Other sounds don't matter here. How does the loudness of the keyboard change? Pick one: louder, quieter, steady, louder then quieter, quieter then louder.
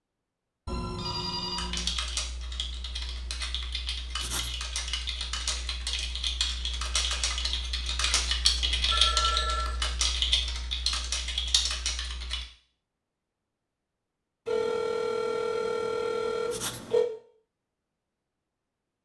louder.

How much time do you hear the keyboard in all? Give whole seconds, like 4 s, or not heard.
11 s.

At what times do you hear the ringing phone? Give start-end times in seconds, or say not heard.
0.7-1.9, 8.2-9.8, 14.4-17.1.